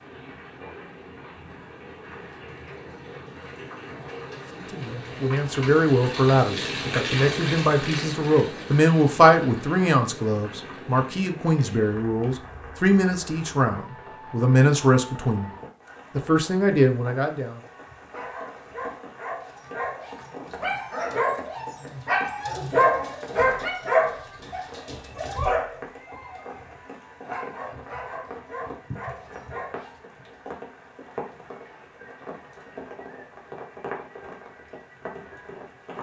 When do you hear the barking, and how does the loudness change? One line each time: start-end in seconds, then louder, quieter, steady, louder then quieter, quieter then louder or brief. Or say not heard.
18.1-30.0 louder then quieter.